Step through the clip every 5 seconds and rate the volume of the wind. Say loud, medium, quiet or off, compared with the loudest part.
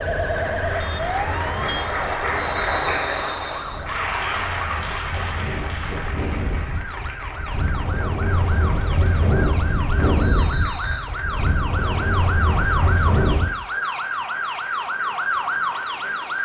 quiet, loud, loud, off.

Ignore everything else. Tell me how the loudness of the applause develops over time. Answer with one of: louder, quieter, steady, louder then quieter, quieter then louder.
quieter.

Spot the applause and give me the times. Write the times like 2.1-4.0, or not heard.
0.0-16.4.